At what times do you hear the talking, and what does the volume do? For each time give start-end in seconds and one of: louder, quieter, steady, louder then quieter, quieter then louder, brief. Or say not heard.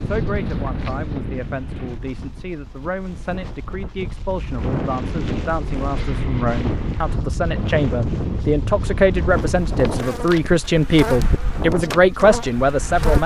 0.0-13.2 louder.